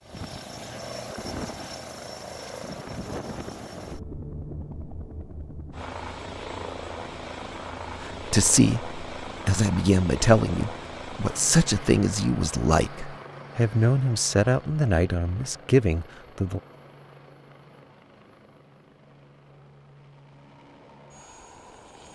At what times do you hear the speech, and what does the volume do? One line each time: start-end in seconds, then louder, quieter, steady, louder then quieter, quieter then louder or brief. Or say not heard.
8.0-16.6 steady.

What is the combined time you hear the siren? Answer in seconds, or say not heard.
not heard.